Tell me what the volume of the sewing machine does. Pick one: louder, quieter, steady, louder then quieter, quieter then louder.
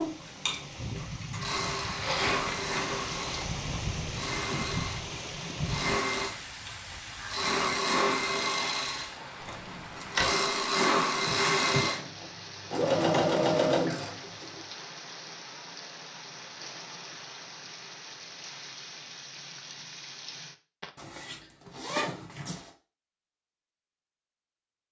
louder.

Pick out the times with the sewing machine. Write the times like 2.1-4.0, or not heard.
0.0-14.6.